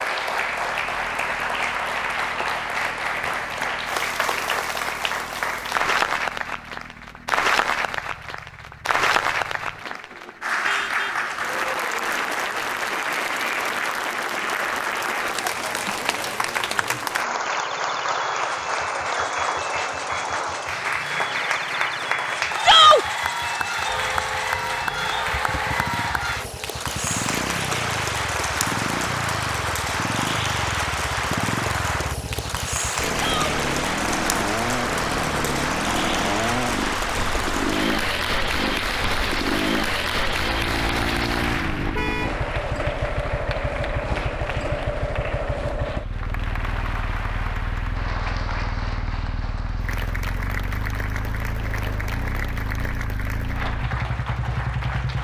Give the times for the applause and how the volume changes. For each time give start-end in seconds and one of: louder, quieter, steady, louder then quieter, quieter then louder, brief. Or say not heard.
0.0-55.2 quieter.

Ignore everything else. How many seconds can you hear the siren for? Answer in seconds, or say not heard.
not heard.